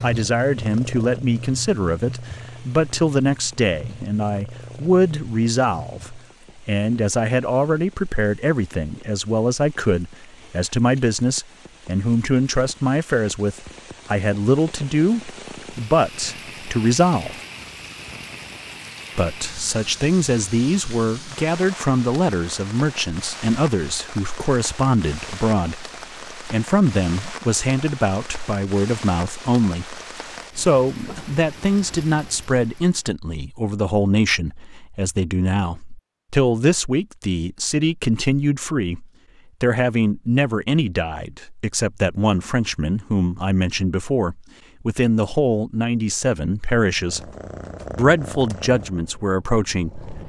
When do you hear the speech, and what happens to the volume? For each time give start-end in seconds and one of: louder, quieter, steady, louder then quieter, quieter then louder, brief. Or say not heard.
0.0-17.4 steady
19.1-47.3 steady
48.0-50.2 brief.